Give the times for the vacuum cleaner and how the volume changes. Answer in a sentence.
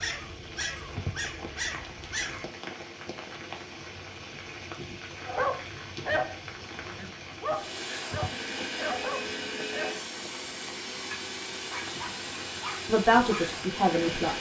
You can hear the vacuum cleaner from 7.5 to 14.3 s, at a steady volume.